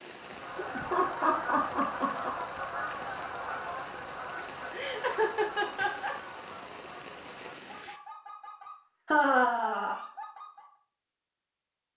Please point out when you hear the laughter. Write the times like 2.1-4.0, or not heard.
0.6-2.3, 4.7-6.2, 9.1-10.0.